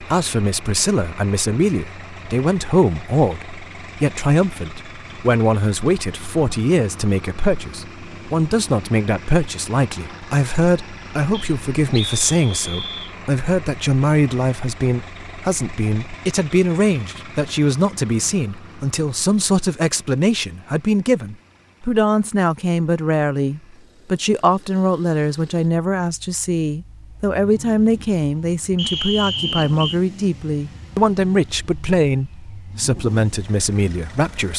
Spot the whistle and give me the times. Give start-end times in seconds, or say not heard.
11.3-13.2, 28.8-30.0.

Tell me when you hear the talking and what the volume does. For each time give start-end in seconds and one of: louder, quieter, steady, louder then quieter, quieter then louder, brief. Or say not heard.
0.0-34.5 steady.